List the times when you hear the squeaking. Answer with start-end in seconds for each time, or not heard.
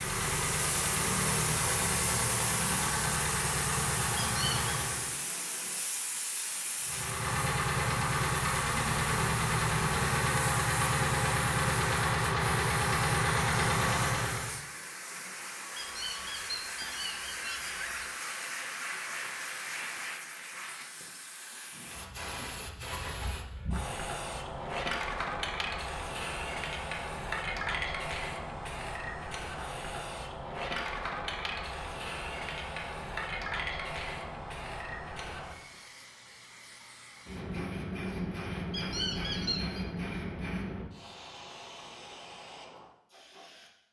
4.2-4.7, 15.8-18.1, 38.7-39.9.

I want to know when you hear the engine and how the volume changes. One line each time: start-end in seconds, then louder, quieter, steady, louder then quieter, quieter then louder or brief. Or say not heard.
0.0-5.2 steady
6.8-14.6 steady.